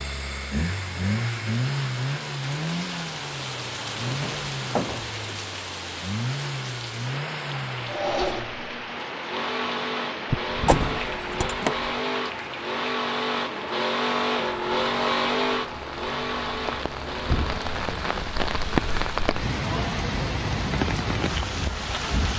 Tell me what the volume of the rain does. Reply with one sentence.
The volume of the rain goes up.